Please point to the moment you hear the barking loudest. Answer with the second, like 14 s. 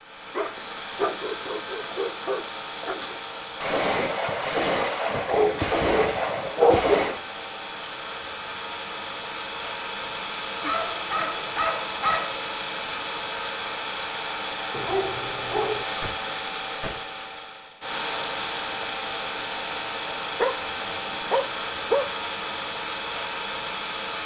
7 s.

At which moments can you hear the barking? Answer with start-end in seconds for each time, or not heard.
0.3-3.1, 5.2-7.0, 10.6-12.3, 14.7-15.8, 20.4-22.1.